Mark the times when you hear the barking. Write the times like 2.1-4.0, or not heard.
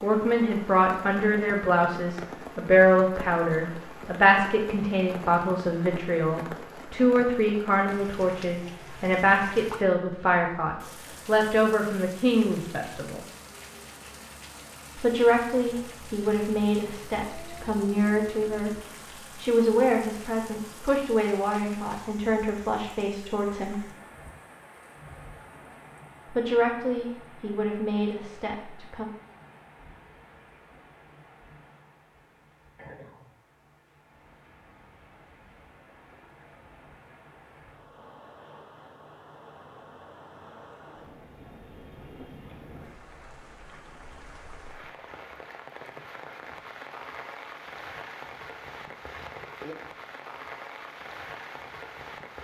not heard.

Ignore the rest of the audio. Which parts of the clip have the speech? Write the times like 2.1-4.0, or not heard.
0.0-13.2, 14.9-18.7, 19.4-23.9, 26.2-29.1.